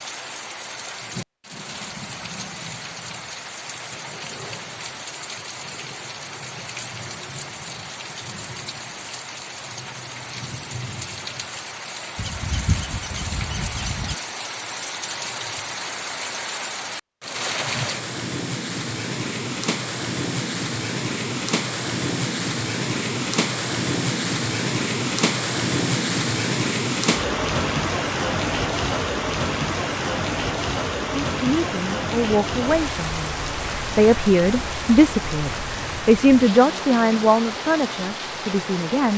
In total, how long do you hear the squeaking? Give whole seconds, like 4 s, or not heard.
2 s.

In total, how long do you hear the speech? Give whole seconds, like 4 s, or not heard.
8 s.